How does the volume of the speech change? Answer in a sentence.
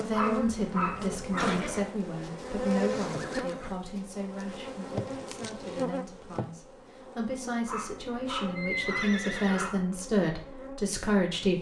The volume of the speech goes down, then up.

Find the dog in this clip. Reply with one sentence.
You can hear the dog from 0.1 to 1.9 s and from 7.7 to 9.8 s.